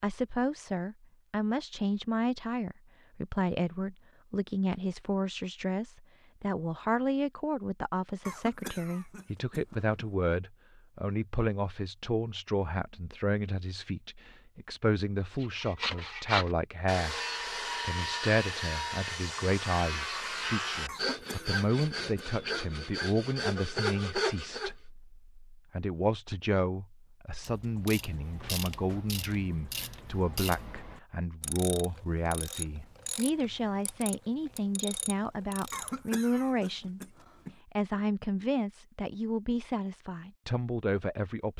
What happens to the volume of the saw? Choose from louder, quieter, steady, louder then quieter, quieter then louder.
steady.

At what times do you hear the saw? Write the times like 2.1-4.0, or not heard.
15.4-24.7.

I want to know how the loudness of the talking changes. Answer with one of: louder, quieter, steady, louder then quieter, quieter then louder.
steady.